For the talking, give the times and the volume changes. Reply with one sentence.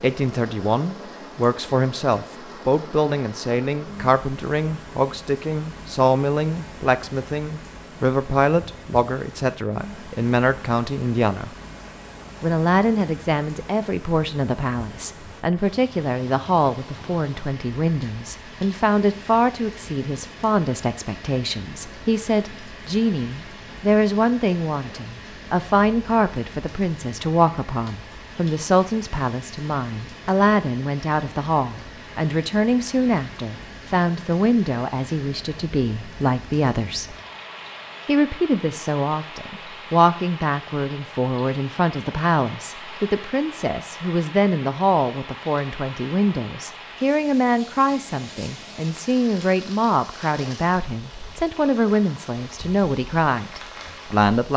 The talking can be heard from 0.0 to 11.6 s, at a steady volume; from 12.4 to 37.1 s, at a steady volume; and from 38.0 to 54.5 s, at a steady volume.